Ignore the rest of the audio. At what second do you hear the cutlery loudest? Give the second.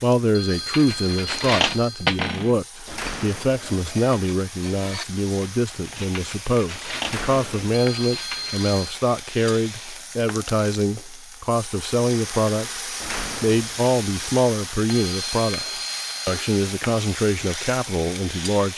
2 s.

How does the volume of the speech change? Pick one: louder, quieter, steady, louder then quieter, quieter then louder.
steady.